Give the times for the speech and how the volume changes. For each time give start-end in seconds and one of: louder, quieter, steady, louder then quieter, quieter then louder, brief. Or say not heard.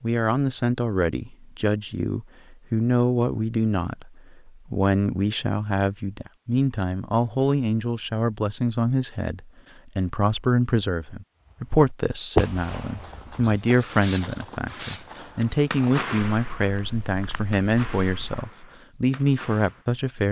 0.0-20.2 steady.